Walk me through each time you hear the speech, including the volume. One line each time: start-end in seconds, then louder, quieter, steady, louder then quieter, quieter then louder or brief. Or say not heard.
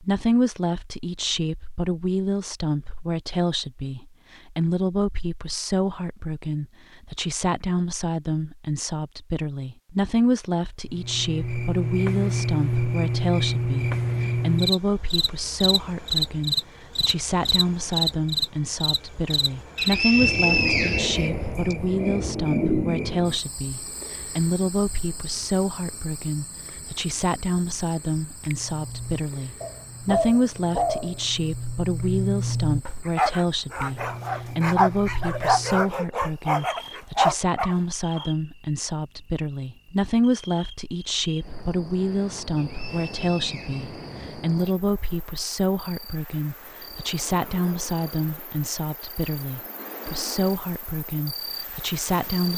0.0-52.5 steady.